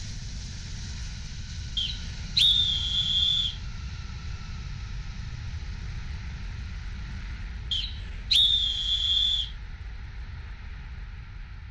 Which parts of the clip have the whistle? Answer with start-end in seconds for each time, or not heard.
1.8-3.5, 7.7-9.5.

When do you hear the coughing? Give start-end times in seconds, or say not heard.
not heard.